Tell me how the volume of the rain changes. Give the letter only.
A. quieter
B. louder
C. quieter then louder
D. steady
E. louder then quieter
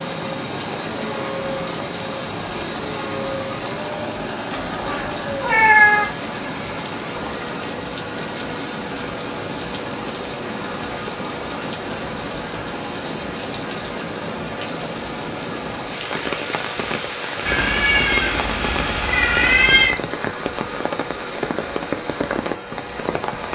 D.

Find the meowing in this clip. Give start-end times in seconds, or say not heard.
4.5-6.0, 17.4-19.9.